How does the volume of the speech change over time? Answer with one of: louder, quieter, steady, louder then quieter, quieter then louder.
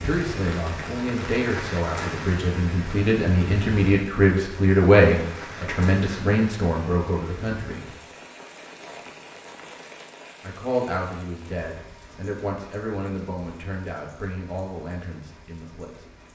louder then quieter.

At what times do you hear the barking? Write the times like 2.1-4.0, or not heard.
not heard.